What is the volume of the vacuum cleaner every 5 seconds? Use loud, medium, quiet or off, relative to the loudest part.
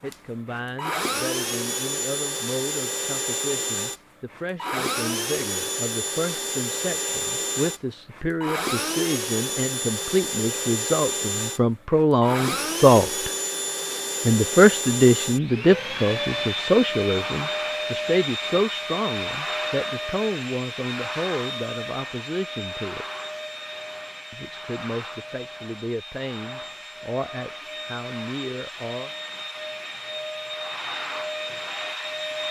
loud, loud, loud, loud, medium, medium, loud.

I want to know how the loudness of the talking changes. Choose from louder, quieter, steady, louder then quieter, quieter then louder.
louder then quieter.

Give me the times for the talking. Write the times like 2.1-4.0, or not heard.
0.0-13.3, 14.2-23.1, 24.3-29.1.